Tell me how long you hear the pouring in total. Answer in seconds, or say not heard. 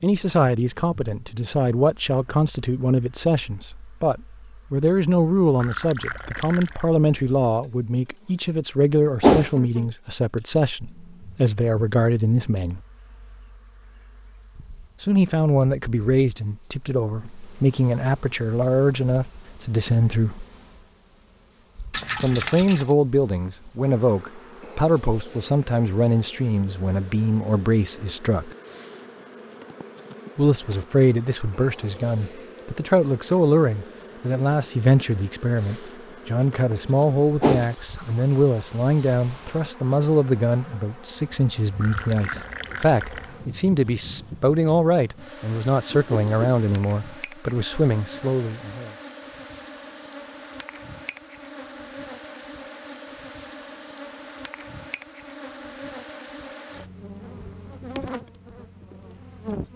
4 s.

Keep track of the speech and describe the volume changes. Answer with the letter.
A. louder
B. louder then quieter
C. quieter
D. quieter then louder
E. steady
E.